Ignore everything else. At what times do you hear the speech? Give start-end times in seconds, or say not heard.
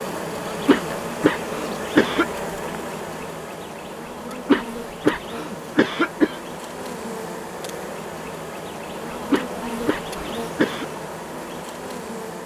not heard.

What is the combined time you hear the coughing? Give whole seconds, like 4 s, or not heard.
6 s.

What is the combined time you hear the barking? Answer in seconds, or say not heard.
not heard.